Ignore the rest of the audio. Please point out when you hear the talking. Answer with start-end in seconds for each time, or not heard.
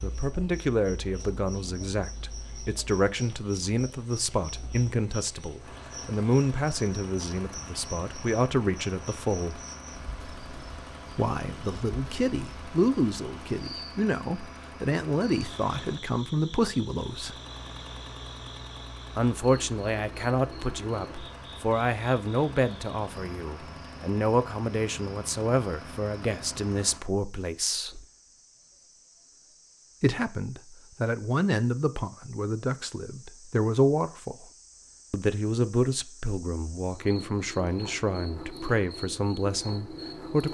0.0-9.7, 11.2-17.4, 19.1-28.1, 30.0-34.5, 35.1-40.5.